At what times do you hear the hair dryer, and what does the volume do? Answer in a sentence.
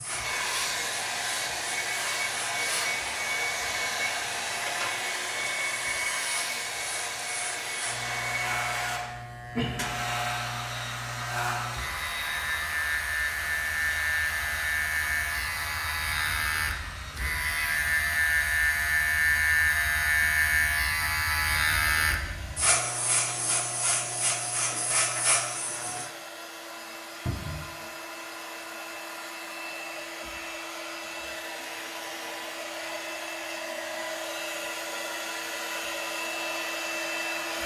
You can hear the hair dryer from 0.0 to 37.6 s, getting quieter then louder.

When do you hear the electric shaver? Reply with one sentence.
The electric shaver can be heard from 0.0 to 26.1 s.